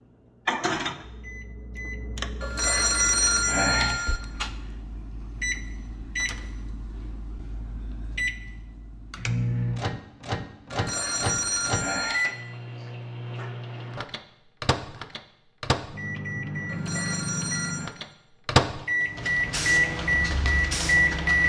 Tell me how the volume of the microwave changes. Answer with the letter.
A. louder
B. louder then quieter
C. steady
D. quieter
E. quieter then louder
A.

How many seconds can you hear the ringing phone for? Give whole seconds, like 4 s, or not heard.
5 s.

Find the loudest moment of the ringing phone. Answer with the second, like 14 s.
3 s.